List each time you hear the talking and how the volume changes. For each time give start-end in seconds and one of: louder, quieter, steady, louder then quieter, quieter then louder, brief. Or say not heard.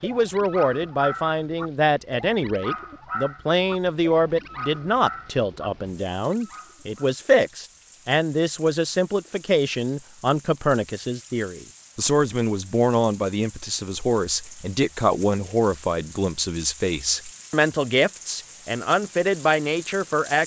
0.0-20.4 steady.